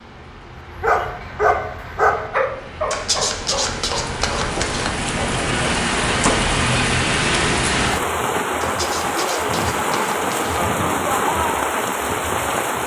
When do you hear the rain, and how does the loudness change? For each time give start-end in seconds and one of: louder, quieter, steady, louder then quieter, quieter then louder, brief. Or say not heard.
0.0-12.8 louder.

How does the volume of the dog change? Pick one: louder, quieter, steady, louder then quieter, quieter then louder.
quieter.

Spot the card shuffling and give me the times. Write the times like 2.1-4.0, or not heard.
2.9-4.9, 8.6-10.6.